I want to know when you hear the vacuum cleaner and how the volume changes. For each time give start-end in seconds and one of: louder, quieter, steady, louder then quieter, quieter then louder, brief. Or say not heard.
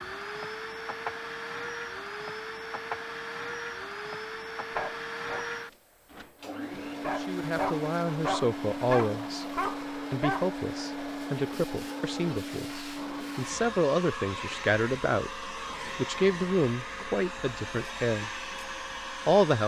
0.0-19.6 steady.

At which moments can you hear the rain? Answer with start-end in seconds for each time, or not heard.
not heard.